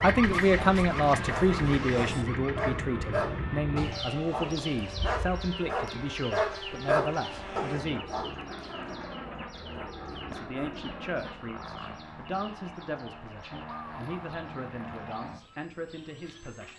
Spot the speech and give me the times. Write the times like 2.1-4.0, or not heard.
0.0-8.2, 10.3-16.7.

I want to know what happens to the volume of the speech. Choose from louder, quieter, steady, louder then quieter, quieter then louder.
quieter.